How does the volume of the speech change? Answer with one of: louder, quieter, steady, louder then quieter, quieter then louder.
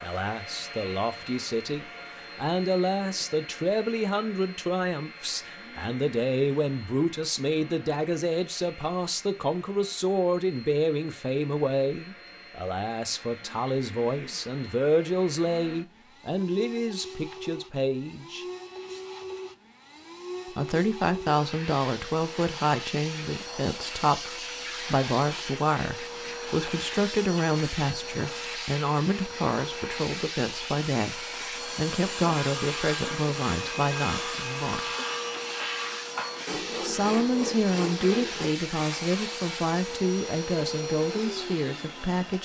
steady.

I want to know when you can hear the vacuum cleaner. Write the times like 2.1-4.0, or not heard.
0.0-42.3.